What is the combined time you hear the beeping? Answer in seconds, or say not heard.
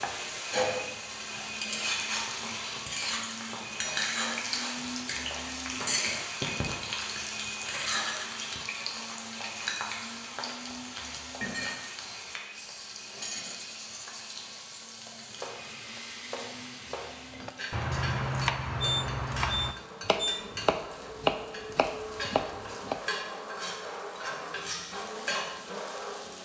2 s.